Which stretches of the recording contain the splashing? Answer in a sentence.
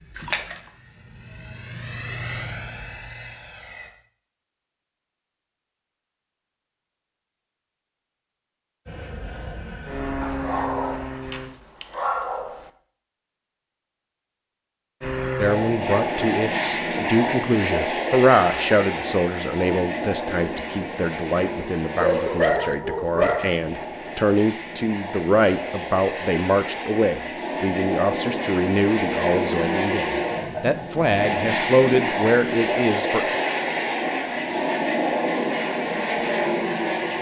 The splashing can be heard from 0.1 to 0.7 s.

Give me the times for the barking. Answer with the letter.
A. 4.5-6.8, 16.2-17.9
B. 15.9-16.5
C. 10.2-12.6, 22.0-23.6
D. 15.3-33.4
C.